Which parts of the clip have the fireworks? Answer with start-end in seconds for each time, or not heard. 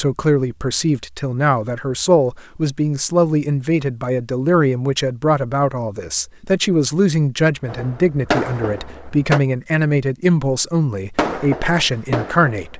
7.7-9.4, 11.2-12.7.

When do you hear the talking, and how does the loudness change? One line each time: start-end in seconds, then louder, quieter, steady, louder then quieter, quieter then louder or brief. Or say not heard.
0.0-12.7 steady.